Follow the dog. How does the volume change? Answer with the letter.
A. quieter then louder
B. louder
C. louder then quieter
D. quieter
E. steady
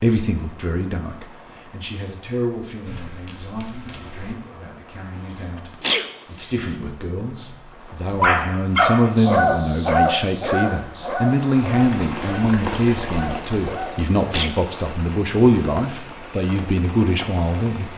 D.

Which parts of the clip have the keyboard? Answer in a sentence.
You can hear the keyboard from 2.9 to 4.3 s.